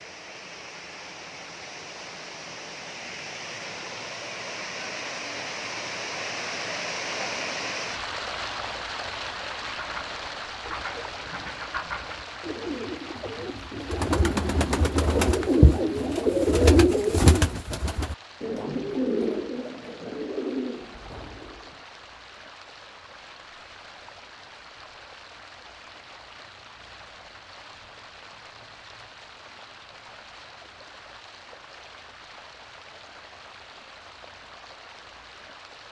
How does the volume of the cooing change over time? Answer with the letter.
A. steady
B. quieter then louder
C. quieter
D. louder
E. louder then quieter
E.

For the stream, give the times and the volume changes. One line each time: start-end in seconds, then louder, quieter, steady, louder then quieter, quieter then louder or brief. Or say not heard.
0.0-35.8 quieter.